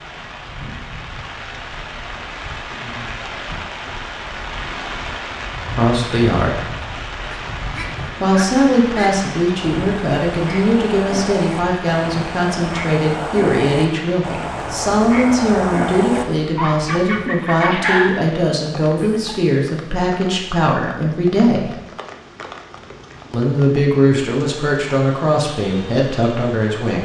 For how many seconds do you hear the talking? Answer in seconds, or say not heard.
18 s.